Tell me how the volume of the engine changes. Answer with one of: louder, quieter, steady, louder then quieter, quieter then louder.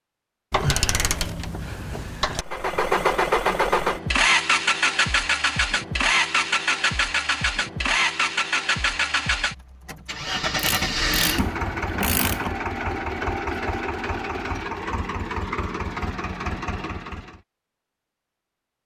quieter.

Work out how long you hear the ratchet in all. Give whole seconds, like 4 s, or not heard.
4 s.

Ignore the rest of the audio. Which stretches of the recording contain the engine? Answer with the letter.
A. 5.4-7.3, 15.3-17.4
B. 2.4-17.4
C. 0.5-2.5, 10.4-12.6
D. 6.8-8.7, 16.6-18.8
B.